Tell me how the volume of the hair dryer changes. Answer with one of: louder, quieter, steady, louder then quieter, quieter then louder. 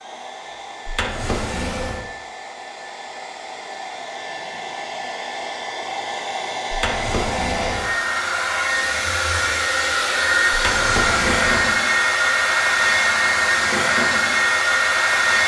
louder.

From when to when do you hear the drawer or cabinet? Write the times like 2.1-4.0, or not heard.
0.8-2.0, 6.7-7.9, 10.5-11.7.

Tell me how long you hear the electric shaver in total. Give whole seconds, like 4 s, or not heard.
not heard.